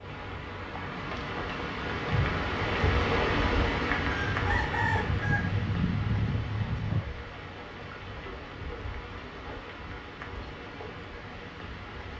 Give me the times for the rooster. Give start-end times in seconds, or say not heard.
4.0-7.0.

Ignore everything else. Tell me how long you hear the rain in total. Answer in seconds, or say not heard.
12 s.